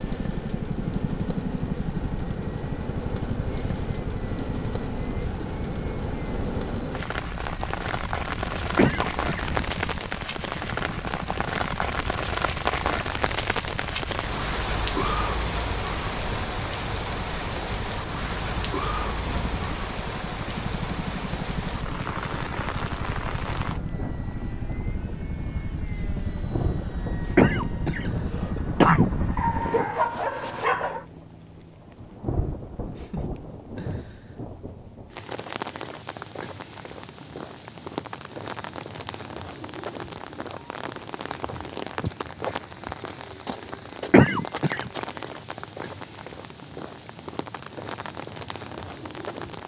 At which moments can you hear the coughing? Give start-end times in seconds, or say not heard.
8.8-9.6, 27.4-29.2, 44.1-44.9.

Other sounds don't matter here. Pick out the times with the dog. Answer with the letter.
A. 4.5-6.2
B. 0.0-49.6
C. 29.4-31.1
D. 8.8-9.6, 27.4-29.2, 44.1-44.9
C.